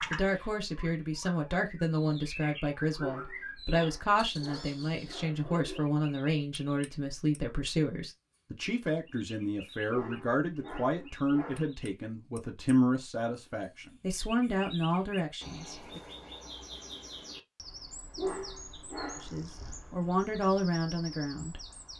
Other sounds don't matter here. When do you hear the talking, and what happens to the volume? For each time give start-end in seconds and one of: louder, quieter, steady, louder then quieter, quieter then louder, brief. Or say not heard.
0.0-16.0 steady
19.2-21.9 brief.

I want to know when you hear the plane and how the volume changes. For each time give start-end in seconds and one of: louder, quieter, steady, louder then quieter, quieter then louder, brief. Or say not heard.
not heard.